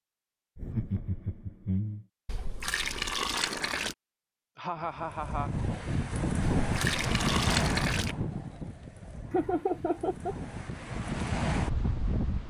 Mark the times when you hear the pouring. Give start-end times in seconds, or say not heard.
2.2-4.0, 6.5-8.2.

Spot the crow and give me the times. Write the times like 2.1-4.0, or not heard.
not heard.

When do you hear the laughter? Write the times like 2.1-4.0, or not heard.
0.6-2.0, 4.5-5.5, 9.3-10.3.